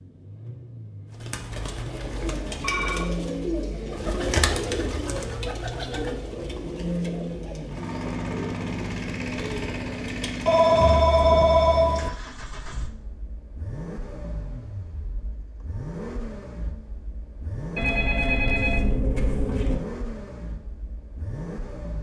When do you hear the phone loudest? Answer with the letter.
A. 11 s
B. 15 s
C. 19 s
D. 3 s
A.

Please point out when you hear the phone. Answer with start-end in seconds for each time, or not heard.
1.5-3.1, 10.4-12.1, 17.8-19.8.